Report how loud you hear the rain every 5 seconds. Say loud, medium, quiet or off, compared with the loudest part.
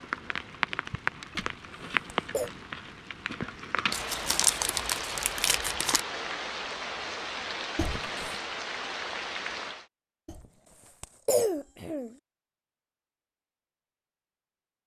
loud, loud, off.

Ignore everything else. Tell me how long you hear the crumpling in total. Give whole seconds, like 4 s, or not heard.
2 s.